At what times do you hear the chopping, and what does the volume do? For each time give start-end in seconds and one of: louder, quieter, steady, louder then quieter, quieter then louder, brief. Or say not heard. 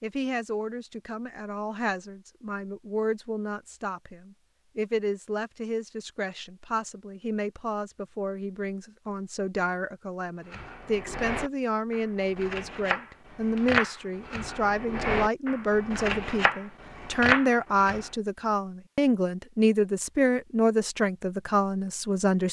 10.5-18.1 louder.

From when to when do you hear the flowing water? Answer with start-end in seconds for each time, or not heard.
not heard.